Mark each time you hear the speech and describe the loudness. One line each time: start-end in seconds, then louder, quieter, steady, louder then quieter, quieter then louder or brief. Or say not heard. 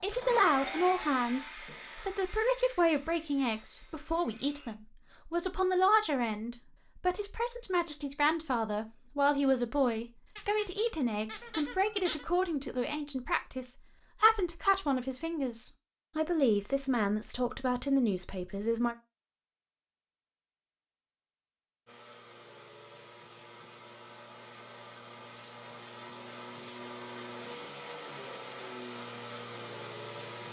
0.0-18.9 steady.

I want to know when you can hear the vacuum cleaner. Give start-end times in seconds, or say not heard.
0.0-4.8, 21.9-30.4.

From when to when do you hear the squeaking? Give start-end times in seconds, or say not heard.
10.3-12.2.